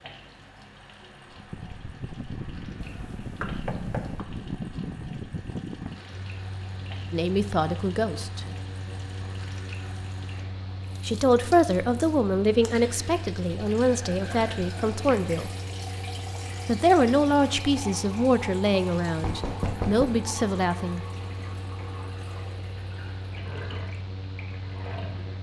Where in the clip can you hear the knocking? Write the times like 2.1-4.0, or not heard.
2.8-4.2, 19.2-20.1.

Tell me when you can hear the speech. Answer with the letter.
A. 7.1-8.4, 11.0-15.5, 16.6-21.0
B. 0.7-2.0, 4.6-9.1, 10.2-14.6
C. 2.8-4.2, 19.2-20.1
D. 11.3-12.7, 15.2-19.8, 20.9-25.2
A.